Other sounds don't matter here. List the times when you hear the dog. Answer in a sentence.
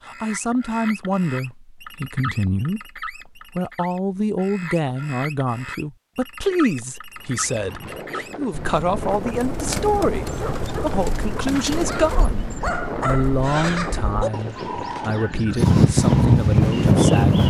The dog can be heard from 10.3 to 15.1 s.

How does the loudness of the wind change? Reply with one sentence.
The volume of the wind goes up.